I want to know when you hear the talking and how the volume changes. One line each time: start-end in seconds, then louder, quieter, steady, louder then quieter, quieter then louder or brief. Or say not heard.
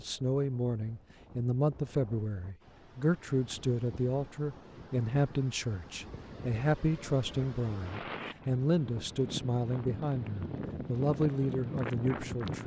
0.0-12.6 steady.